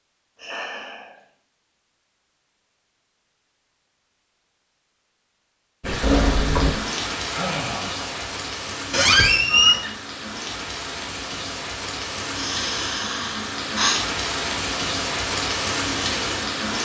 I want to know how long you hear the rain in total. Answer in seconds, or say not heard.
11 s.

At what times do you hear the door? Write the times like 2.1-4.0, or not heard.
6.0-6.8, 8.9-9.9.